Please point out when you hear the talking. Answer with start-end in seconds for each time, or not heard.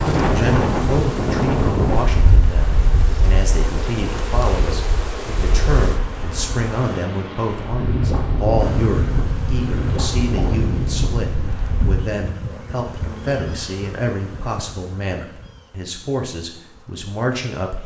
0.0-17.8.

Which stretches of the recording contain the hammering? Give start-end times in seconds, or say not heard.
not heard.